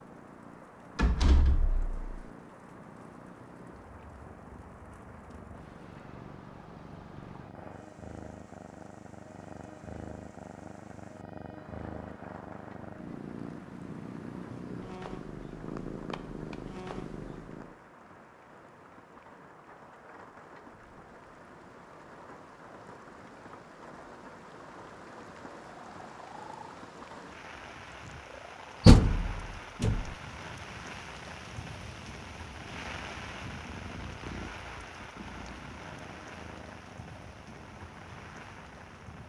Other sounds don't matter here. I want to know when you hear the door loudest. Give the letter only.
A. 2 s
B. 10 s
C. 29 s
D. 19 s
C.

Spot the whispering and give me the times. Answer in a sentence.
The whispering can't be heard in this clip.